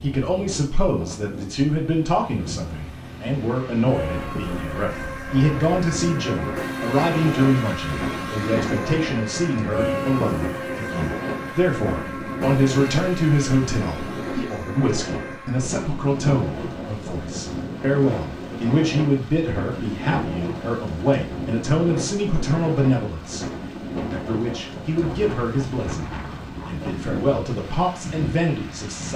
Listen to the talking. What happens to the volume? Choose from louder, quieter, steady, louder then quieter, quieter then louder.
steady.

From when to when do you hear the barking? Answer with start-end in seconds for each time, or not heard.
not heard.